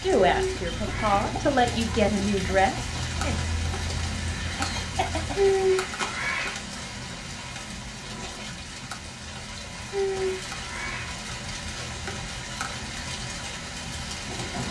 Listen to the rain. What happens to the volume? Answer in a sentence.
The loudness of the rain stays about the same.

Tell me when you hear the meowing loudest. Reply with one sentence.
The volume of the meowing peaks at 6 seconds.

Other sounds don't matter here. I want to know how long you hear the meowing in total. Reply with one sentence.
You can hear the meowing for 4 seconds altogether.